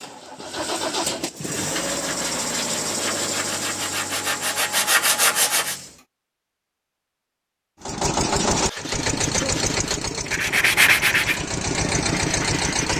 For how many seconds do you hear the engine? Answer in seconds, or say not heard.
11 s.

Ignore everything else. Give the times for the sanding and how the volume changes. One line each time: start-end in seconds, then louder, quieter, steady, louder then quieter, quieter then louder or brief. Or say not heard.
1.4-5.8 louder
8.5-12.9 louder then quieter.